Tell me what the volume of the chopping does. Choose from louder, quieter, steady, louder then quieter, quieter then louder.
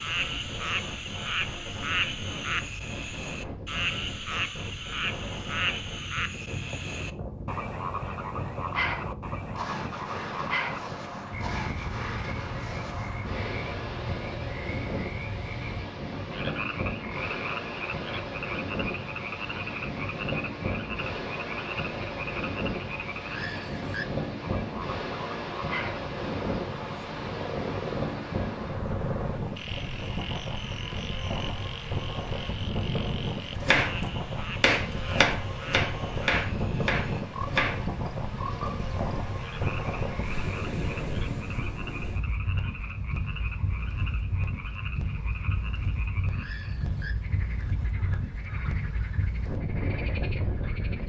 quieter.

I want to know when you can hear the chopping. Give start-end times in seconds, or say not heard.
33.6-39.0.